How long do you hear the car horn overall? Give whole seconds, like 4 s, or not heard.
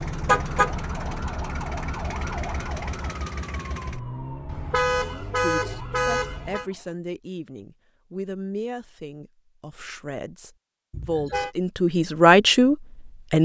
3 s.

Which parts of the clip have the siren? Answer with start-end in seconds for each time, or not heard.
0.0-7.0.